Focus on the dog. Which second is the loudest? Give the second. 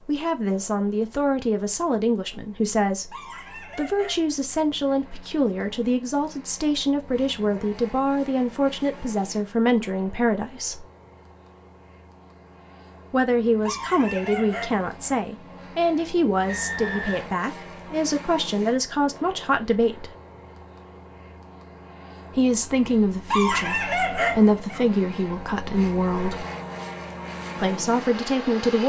24 s.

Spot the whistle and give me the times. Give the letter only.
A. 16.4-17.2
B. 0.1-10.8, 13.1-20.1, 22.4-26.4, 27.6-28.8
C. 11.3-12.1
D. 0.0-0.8
A.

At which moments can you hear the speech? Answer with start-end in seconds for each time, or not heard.
0.1-10.8, 13.1-20.1, 22.4-26.4, 27.6-28.8.